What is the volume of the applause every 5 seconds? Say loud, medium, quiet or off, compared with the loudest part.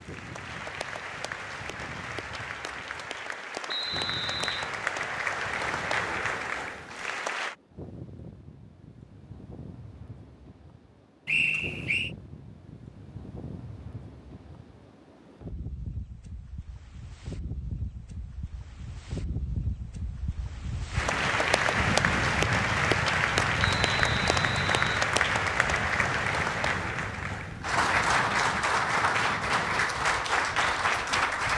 medium, medium, off, off, loud, loud, loud.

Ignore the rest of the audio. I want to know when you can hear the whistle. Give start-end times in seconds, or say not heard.
3.6-4.7, 11.2-12.1, 23.6-25.1.